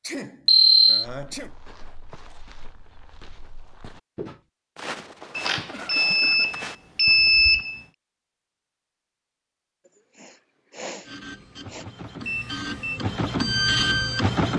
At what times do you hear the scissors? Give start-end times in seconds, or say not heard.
not heard.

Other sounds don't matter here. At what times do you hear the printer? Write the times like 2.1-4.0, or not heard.
11.0-14.5.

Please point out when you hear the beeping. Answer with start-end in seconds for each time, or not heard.
0.5-1.1, 5.3-7.8, 12.2-13.0.